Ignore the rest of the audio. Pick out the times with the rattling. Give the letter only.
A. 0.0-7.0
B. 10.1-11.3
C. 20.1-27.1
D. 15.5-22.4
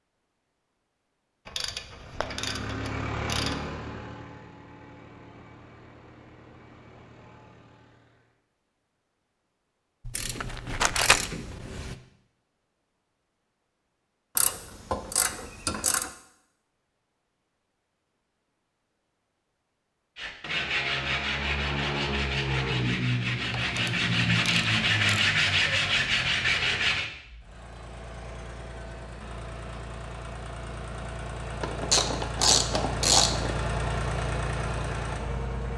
B.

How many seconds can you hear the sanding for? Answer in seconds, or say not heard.
7 s.